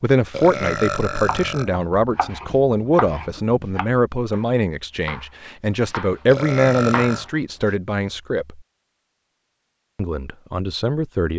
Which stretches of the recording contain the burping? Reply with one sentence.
The burping can be heard from 0.3 to 1.7 s and from 6.2 to 7.2 s.